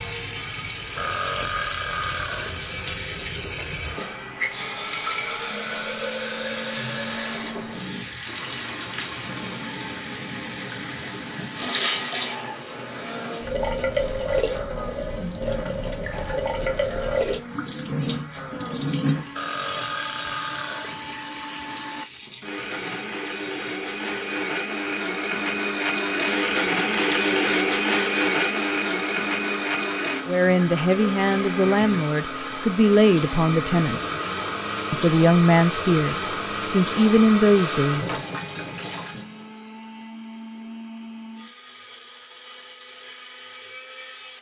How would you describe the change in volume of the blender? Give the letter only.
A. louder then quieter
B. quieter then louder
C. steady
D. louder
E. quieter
A.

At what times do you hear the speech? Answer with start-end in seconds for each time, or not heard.
30.2-34.0, 34.9-38.1.